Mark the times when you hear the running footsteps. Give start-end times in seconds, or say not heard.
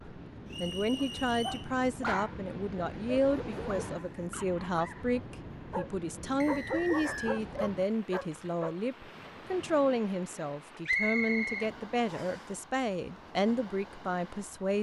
not heard.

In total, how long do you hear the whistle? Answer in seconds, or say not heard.
4 s.